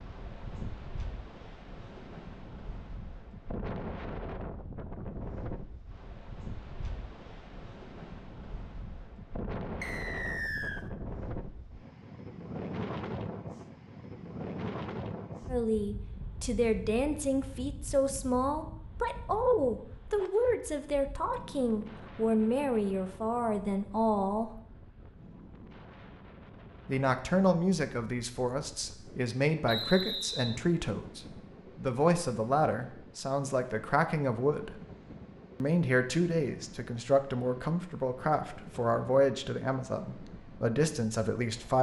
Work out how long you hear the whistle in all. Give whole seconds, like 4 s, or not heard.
2 s.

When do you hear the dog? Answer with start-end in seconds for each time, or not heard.
not heard.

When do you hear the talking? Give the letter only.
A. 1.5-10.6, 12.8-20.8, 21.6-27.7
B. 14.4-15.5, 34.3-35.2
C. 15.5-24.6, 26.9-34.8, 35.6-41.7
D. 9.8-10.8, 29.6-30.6
C.